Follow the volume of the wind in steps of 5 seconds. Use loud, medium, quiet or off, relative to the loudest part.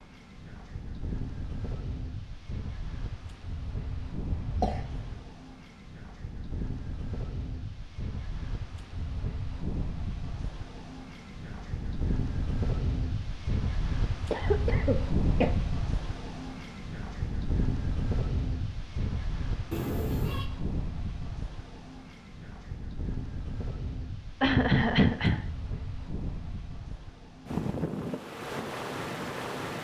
medium, medium, loud, loud, medium, loud.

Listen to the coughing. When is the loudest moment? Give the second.
25 s.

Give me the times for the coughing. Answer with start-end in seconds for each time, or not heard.
3.8-5.2, 14.3-15.5, 24.4-25.4.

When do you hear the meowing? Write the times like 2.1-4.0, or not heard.
19.7-20.4.